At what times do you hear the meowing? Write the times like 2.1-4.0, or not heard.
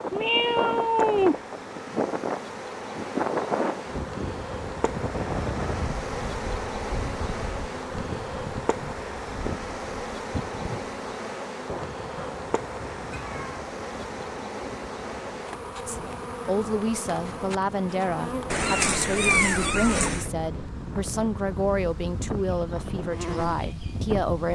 0.1-1.4, 12.2-13.7, 18.5-20.3.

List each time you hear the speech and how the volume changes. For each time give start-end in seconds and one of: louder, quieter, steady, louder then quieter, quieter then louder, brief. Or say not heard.
15.8-24.4 steady.